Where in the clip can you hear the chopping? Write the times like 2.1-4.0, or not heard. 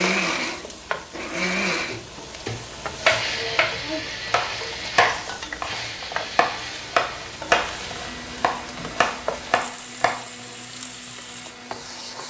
3.0-10.2.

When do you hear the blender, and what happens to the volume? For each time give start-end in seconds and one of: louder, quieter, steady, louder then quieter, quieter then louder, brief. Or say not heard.
0.0-12.2 quieter.